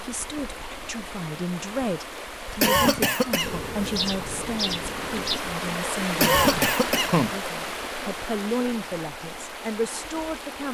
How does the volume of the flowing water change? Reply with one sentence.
The volume of the flowing water goes up, then down.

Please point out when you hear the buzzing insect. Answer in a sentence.
You can hear the buzzing insect from 3.4 to 5.4 s.